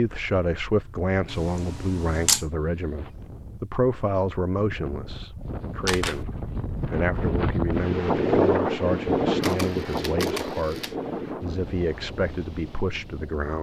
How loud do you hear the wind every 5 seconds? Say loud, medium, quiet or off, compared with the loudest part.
quiet, loud, medium.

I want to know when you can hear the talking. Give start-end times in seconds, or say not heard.
0.0-13.5.